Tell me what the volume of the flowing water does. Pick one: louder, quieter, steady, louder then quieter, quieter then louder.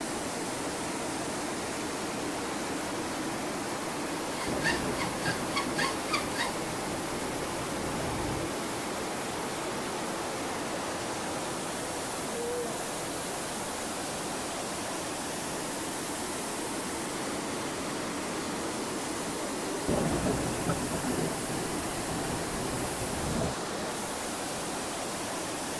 steady.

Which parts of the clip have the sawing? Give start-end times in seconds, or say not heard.
4.3-6.5.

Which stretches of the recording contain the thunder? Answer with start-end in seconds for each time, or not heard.
4.5-8.5, 19.9-23.6.